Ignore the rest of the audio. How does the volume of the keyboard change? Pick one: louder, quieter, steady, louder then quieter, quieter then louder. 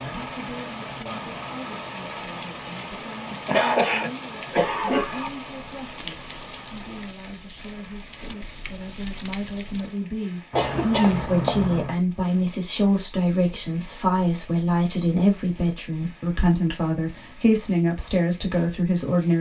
quieter then louder.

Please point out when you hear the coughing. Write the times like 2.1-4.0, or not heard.
3.3-5.3, 10.5-11.9.